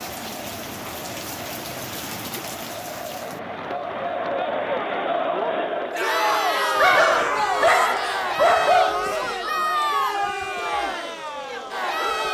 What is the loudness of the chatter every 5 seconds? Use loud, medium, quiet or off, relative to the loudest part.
medium, loud, loud.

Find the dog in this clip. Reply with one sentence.
The dog can be heard from 6.8 to 9.0 s.